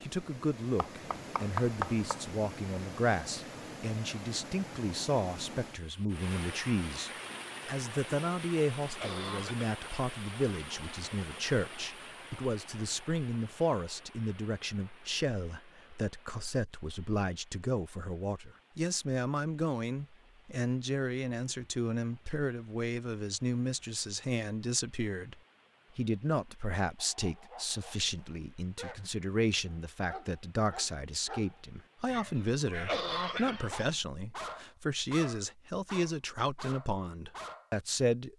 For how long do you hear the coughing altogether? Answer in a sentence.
You can hear the coughing for 2 seconds altogether.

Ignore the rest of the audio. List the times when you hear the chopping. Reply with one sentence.
The chopping can be heard from 0.8 to 2.4 s.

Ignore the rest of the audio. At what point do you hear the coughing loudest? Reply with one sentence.
The volume of the coughing peaks at 33 seconds.